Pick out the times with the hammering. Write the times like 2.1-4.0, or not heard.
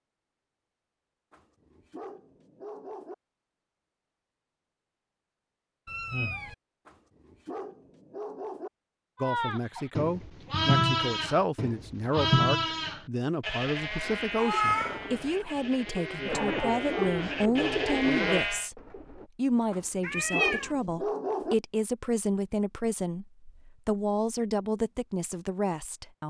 not heard.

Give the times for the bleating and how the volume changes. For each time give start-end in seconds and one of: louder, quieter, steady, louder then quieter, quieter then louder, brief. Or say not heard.
9.2-18.7 quieter then louder.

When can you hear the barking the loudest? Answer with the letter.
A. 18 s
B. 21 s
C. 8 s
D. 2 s
B.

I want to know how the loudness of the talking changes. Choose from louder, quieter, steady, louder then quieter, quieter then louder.
steady.